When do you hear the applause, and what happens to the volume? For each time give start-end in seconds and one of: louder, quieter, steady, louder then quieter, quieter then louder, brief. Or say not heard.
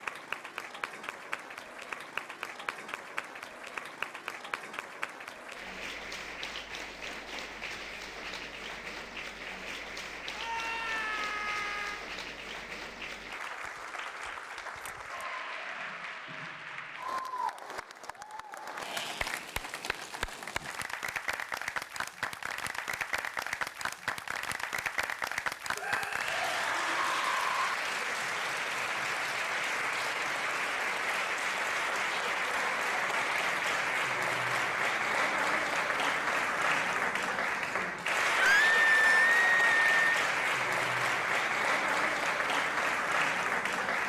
0.0-44.0 louder.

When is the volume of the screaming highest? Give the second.
39 s.